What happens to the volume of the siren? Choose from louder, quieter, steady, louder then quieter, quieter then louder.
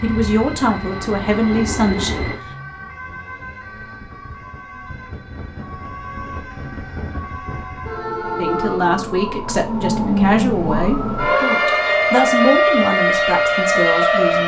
louder.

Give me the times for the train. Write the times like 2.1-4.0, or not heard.
0.0-2.4.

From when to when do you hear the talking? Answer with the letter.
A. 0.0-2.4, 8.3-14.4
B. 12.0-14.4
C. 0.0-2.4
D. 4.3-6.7
A.